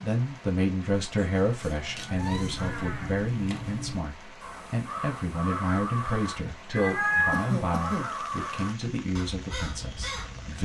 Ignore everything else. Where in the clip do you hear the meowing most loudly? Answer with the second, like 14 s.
7 s.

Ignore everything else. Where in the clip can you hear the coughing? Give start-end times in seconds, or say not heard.
7.3-8.1.